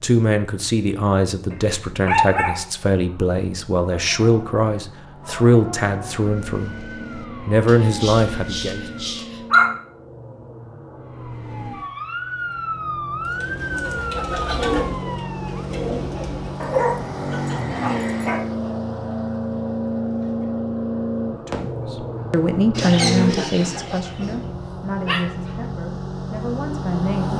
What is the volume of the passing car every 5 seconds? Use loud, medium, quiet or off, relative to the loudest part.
quiet, medium, medium, loud, loud, loud.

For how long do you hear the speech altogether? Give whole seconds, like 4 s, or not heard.
14 s.